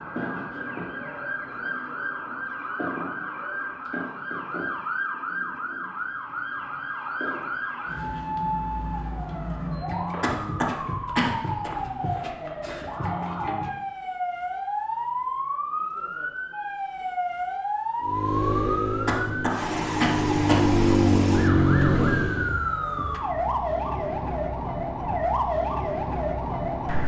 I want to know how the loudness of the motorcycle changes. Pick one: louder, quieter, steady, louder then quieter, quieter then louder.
quieter then louder.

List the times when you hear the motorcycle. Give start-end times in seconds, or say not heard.
18.0-22.6.